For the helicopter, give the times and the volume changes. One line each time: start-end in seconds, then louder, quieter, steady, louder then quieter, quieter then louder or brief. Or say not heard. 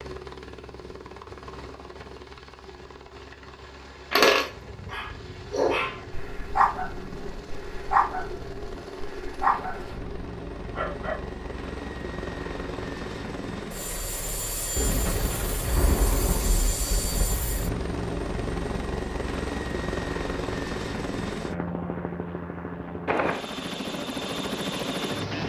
0.0-25.4 louder.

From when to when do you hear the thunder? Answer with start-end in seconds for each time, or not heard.
4.5-9.0, 14.8-17.8.